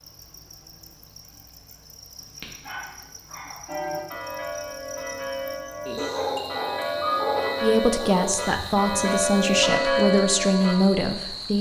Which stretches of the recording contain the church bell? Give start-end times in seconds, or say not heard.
3.6-10.8.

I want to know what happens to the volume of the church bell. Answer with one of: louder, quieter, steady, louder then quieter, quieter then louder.
louder.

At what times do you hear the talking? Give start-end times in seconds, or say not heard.
7.6-11.5.